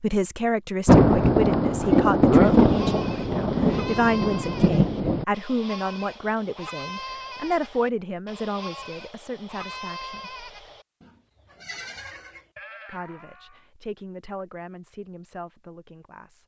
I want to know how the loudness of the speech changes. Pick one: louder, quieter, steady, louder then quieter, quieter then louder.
quieter.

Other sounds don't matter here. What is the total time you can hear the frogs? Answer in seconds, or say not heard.
not heard.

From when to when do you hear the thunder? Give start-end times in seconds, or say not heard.
0.8-5.2.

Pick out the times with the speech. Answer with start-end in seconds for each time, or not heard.
0.0-10.3, 12.8-16.4.